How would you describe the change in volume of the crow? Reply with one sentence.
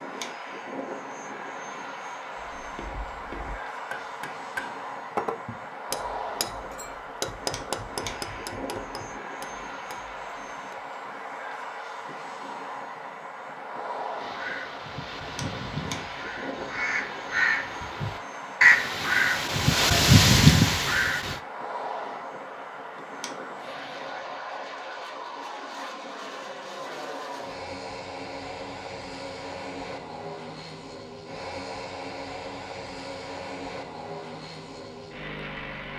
The loudness of the crow goes up.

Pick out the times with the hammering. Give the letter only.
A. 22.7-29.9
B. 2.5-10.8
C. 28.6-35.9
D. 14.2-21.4
B.